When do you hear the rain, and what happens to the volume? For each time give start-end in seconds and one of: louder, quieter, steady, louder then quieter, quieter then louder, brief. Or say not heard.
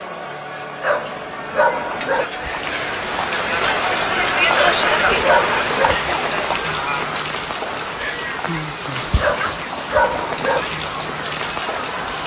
2.2-12.2 steady.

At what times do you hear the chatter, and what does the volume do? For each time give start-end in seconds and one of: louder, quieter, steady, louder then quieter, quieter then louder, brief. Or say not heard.
0.0-12.2 louder then quieter.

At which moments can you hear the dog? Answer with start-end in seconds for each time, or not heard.
0.8-2.2, 4.5-6.0, 9.2-10.7.